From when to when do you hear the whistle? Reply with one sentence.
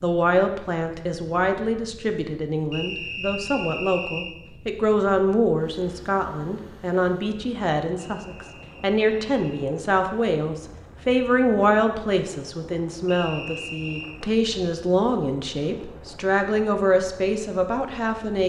The whistle can be heard from 2.7 to 4.3 s, from 8.0 to 9.7 s and from 13.1 to 14.2 s.